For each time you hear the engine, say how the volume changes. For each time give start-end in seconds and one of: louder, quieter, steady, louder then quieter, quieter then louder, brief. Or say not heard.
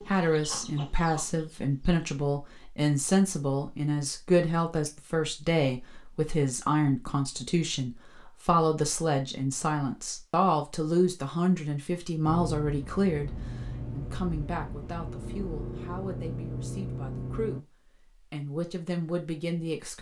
12.2-17.6 louder.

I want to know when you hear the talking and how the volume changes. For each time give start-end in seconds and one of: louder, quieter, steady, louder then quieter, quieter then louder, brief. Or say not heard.
0.1-17.6 quieter
18.3-19.9 brief.